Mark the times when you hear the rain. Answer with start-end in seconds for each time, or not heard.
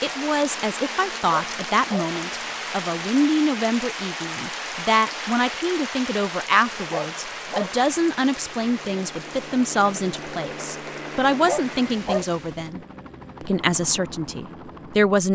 0.0-12.7.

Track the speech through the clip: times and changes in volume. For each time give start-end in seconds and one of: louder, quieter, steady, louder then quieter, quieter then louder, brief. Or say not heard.
0.0-12.8 steady
13.4-15.3 brief.